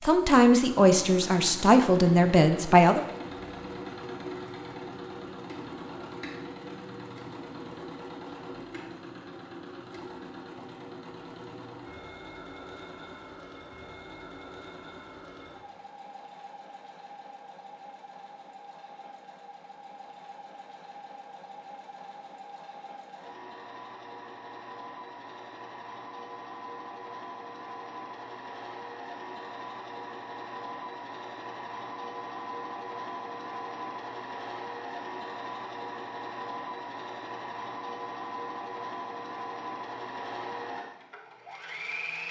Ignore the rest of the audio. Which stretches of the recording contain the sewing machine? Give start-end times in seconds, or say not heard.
0.0-42.2.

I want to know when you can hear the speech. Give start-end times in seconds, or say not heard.
0.0-3.0.